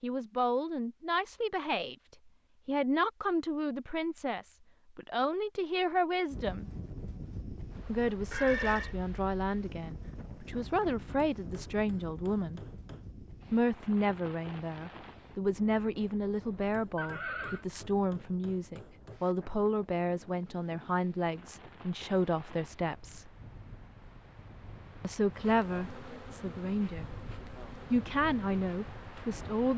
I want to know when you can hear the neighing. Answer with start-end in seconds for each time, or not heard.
8.3-8.9, 16.9-17.6.